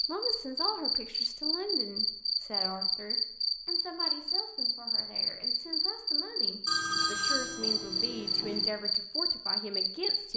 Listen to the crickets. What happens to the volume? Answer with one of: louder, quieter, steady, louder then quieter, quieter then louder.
steady.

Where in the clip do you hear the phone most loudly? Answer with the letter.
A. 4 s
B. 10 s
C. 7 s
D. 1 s
C.